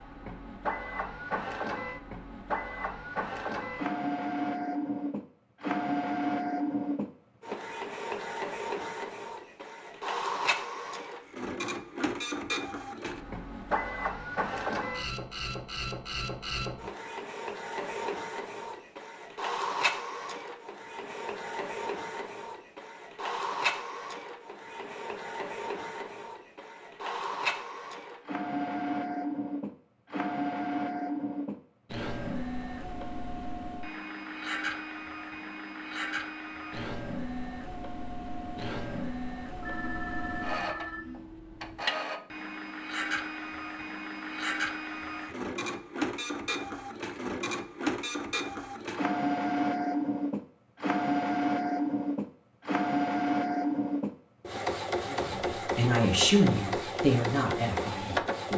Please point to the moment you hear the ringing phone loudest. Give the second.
40 s.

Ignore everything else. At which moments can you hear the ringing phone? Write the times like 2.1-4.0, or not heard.
39.6-41.9.